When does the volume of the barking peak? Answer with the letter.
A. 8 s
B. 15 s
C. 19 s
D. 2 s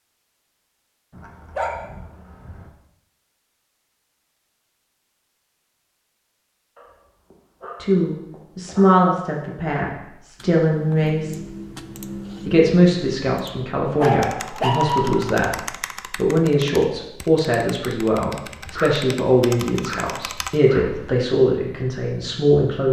B.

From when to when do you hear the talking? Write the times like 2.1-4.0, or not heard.
7.8-11.4, 12.4-22.8.